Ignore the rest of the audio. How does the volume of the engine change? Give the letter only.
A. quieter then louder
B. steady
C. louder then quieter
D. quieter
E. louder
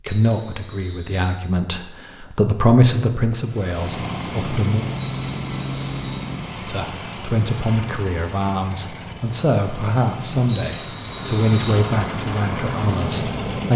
A.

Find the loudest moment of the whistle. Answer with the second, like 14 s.
11 s.